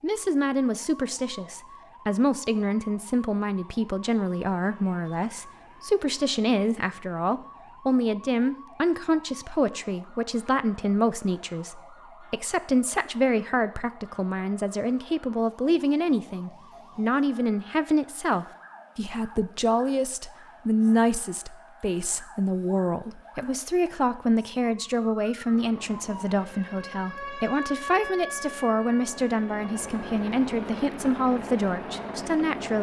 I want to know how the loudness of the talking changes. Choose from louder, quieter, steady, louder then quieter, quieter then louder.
steady.